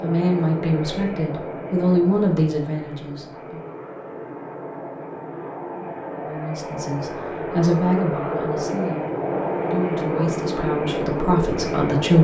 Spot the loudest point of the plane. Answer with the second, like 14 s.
10 s.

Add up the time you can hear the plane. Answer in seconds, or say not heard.
12 s.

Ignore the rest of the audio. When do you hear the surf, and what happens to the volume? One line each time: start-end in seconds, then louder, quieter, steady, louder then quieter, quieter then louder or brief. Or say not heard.
not heard.